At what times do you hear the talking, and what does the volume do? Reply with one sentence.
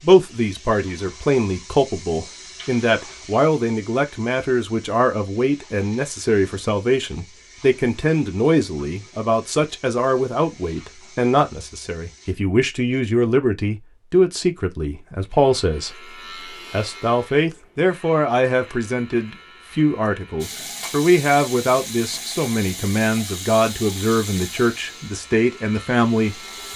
You can hear the talking from 0.0 to 26.4 s, at a steady volume.